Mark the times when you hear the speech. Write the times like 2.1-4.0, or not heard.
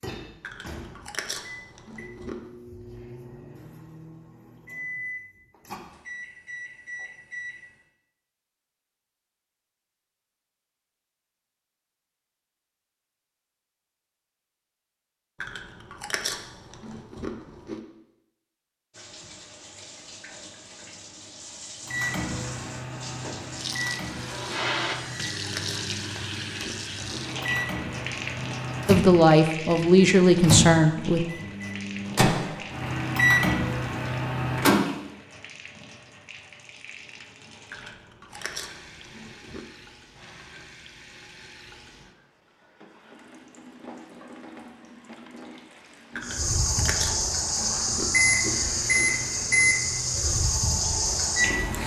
28.9-31.2.